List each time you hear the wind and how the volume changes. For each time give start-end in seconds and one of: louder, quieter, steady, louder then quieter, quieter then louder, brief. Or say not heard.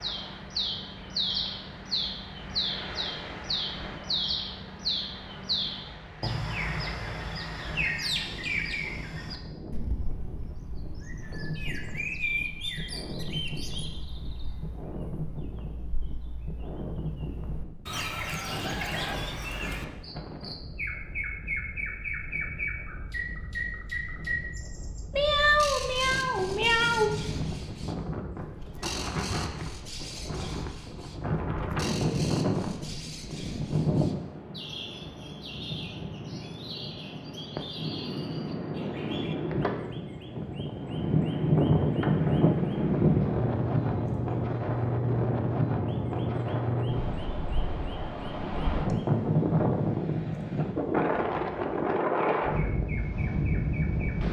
0.0-54.2 louder.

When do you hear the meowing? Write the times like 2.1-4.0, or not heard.
25.1-27.1.